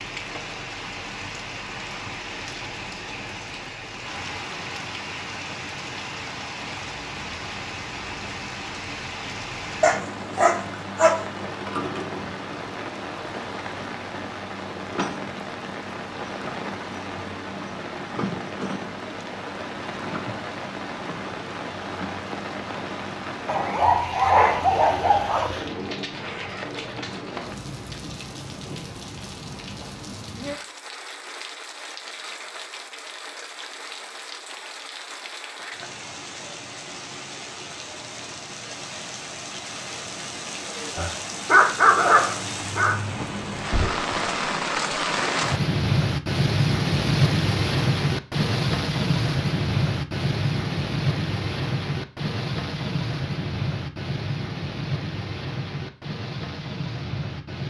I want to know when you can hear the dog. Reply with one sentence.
The dog can be heard from 9.8 to 11.2 s, from 23.4 to 25.5 s and from 41.0 to 43.0 s.